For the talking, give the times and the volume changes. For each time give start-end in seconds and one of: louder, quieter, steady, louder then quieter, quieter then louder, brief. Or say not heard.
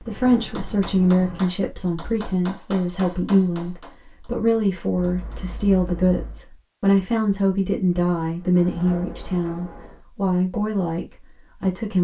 0.0-11.9 steady.